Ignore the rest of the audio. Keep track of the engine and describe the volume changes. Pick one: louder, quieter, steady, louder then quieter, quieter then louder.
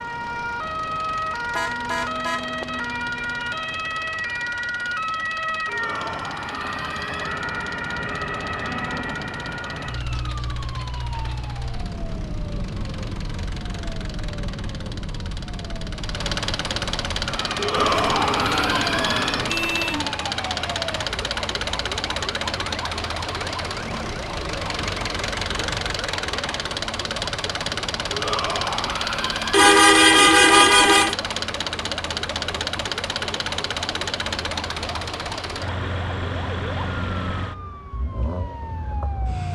louder.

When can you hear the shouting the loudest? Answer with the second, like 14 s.
18 s.